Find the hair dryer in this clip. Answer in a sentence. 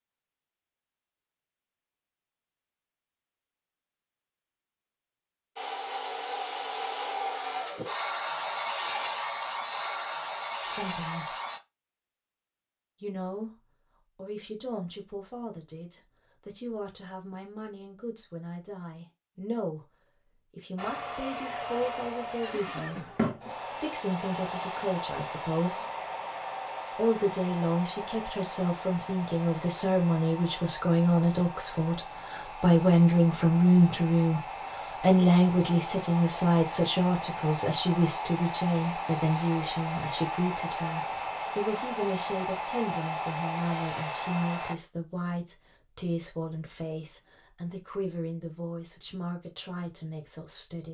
The hair dryer can be heard from 5.5 to 11.6 s and from 20.8 to 44.8 s.